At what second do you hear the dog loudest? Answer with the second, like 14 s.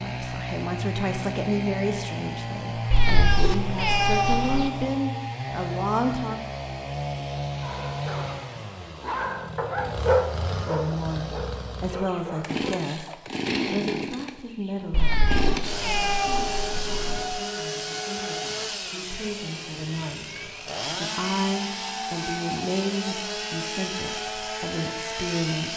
10 s.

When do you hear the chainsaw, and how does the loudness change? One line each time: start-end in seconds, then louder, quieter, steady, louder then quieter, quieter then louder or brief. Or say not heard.
0.0-25.7 steady.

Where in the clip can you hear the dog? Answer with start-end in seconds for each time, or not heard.
7.5-13.2.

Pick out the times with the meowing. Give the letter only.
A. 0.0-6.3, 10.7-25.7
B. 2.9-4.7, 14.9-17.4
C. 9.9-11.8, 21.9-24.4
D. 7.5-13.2
B.